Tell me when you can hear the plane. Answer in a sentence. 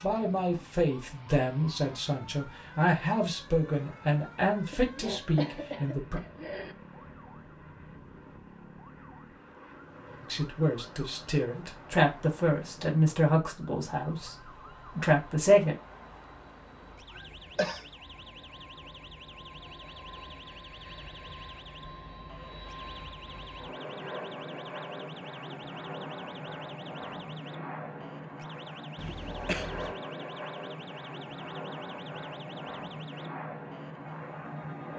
You can hear the plane from 0.0 to 34.9 s.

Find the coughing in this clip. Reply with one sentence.
The coughing can be heard from 4.7 to 6.8 s, from 17.1 to 17.9 s and from 28.9 to 29.9 s.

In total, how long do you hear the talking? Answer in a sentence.
You can hear the talking for 12 seconds altogether.